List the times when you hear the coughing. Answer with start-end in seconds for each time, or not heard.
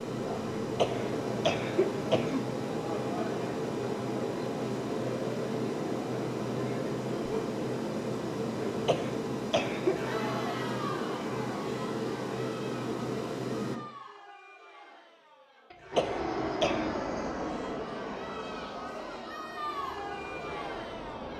0.8-2.5, 8.8-10.2, 15.7-17.0.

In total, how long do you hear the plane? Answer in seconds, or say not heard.
19 s.